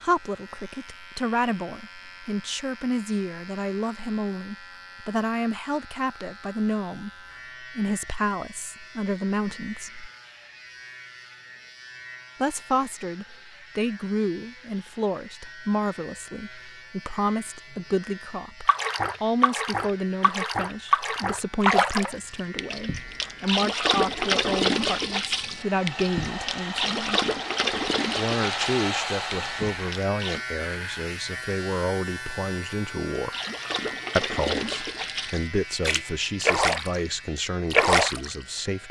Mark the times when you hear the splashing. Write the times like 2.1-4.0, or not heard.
18.6-30.4, 33.1-37.0, 37.7-38.3.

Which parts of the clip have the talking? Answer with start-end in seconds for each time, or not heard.
0.0-10.1, 12.4-27.2, 28.1-33.4, 34.1-38.8.